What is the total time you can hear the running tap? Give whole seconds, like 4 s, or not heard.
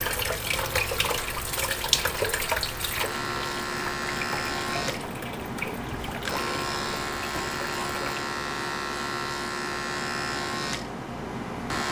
8 s.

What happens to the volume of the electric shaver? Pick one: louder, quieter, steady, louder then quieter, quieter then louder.
louder.